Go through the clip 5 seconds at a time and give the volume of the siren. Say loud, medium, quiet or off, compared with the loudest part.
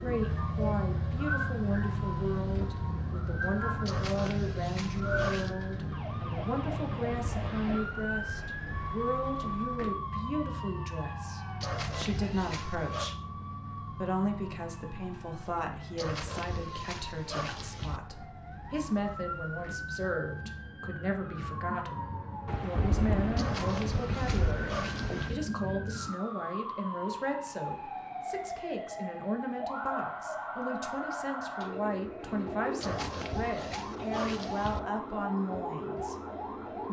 loud, loud, medium, medium, loud, loud, loud, loud.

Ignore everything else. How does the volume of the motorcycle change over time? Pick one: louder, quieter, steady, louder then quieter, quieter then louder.
quieter.